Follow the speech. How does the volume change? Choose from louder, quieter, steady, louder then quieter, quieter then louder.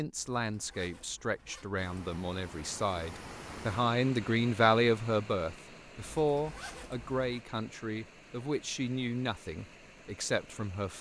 louder then quieter.